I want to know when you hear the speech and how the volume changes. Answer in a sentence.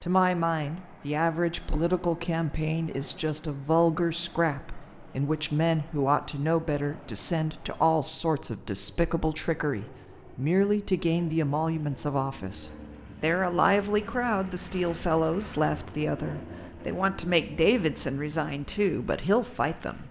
The speech can be heard from 0.0 to 20.0 s, at a steady volume.